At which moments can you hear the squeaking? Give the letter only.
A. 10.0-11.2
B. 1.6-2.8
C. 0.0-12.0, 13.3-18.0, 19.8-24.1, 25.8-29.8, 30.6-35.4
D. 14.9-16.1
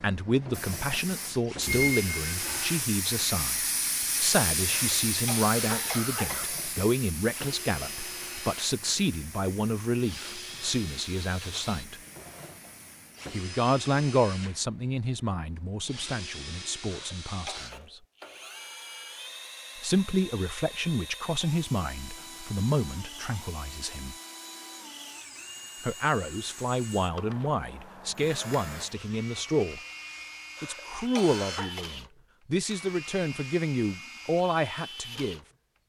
B.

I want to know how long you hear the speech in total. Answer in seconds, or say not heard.
30 s.